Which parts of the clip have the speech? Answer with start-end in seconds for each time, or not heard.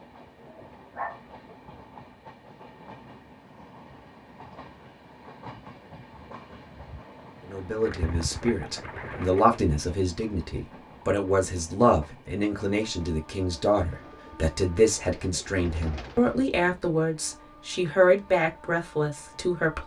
7.5-19.8.